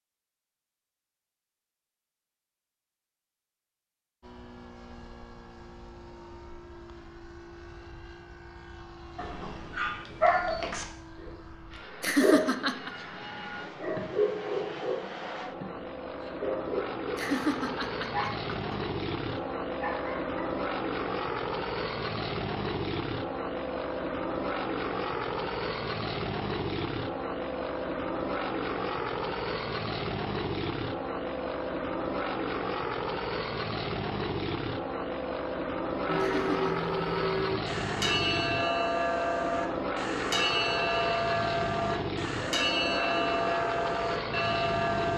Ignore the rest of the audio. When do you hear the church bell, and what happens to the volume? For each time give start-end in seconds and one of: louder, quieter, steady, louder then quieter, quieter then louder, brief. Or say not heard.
36.0-45.1 steady.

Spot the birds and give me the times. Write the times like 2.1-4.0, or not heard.
not heard.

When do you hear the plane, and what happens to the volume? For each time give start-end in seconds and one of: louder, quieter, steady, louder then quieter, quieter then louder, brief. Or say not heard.
4.2-45.1 louder.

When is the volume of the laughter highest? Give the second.
12 s.